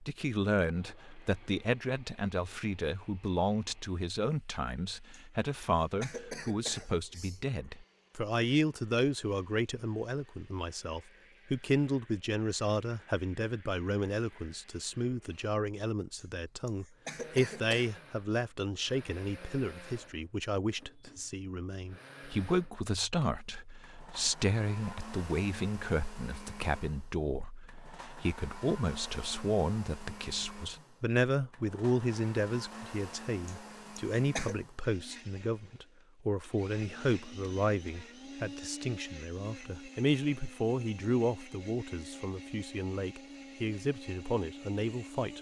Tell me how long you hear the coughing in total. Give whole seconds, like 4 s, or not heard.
5 s.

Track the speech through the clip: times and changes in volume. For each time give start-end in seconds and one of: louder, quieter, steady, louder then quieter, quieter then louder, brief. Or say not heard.
0.0-45.3 steady.